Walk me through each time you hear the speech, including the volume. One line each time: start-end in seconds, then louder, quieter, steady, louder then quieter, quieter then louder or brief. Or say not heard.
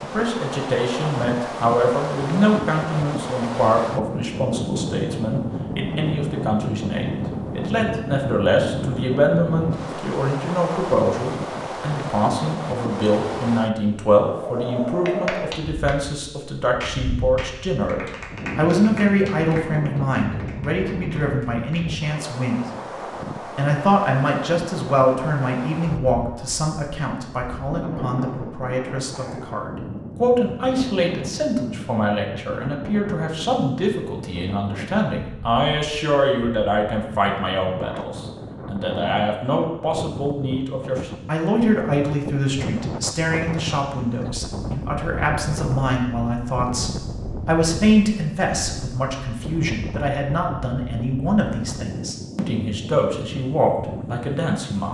0.0-22.6 steady
23.4-54.8 steady.